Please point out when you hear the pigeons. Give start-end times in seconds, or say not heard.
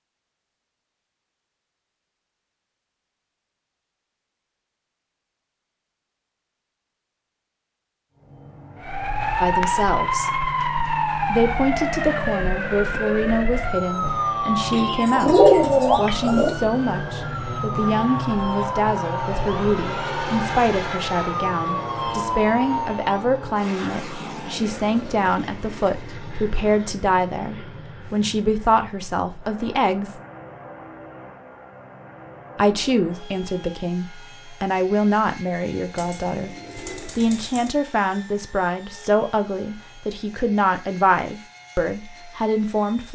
14.7-16.6, 36.0-37.7.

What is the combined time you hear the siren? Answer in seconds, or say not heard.
14 s.